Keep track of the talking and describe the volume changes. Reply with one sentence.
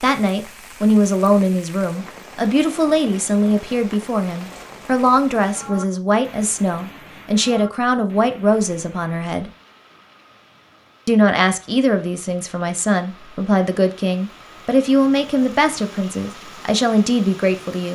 The loudness of the talking stays about the same.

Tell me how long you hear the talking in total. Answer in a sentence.
The talking can be heard for 16 seconds in total.